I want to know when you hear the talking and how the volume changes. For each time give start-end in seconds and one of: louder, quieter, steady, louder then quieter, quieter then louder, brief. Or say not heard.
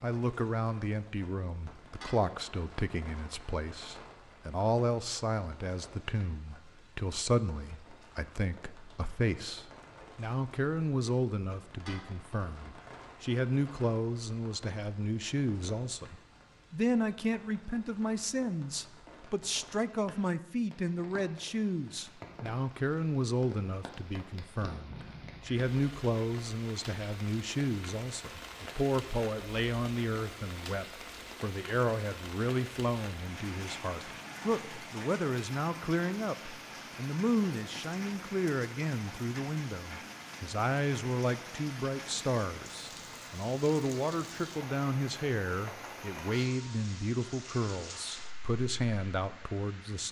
0.0-50.0 steady.